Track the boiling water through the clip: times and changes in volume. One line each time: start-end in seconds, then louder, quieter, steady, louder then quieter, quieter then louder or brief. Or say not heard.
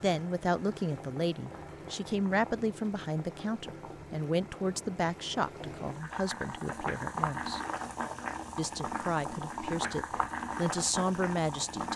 0.0-11.9 louder.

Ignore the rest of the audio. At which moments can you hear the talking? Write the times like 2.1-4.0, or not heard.
0.0-7.6, 8.6-11.9.